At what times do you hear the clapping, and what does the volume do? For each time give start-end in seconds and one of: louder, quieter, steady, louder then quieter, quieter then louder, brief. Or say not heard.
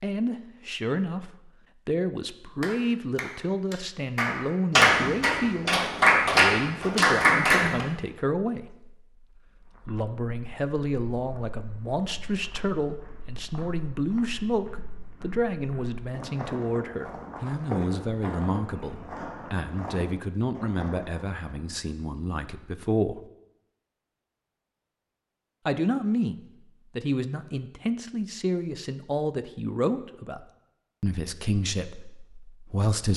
2.6-7.8 louder.